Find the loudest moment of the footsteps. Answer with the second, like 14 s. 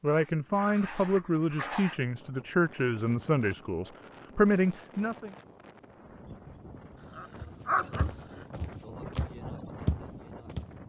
10 s.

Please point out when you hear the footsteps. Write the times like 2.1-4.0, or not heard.
7.3-10.8.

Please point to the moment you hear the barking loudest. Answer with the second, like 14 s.
8 s.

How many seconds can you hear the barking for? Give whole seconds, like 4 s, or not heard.
4 s.